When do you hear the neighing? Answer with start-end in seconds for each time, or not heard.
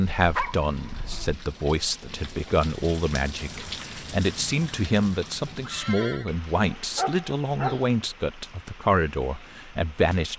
5.6-6.3.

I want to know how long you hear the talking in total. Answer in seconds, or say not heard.
10 s.